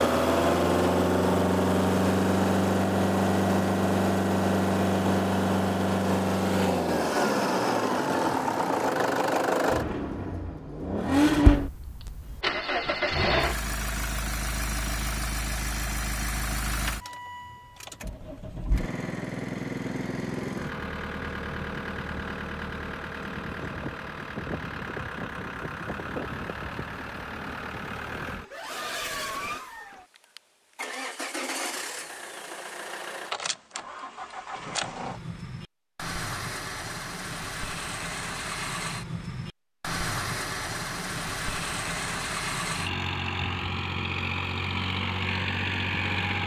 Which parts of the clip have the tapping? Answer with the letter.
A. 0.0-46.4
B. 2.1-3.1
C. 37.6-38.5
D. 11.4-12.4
D.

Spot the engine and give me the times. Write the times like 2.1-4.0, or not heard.
0.0-46.4.